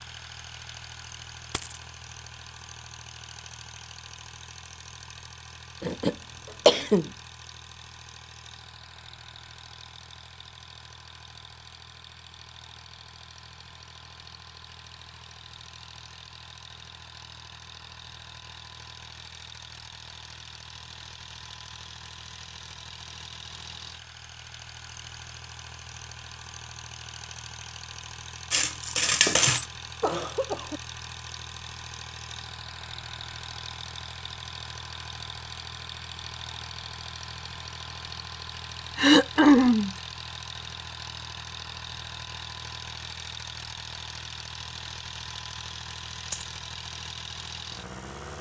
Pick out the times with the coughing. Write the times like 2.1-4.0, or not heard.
5.8-7.0, 29.4-30.8, 39.0-39.9.